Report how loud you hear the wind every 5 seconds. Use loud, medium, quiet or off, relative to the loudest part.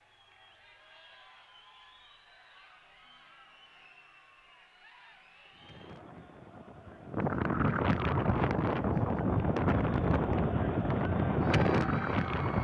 off, loud, loud.